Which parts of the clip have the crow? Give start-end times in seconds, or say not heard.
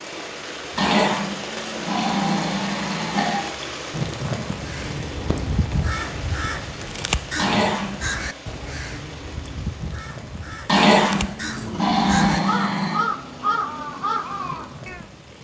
4.5-15.1.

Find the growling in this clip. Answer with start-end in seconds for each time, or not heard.
0.8-3.5, 7.3-8.1, 10.7-13.0.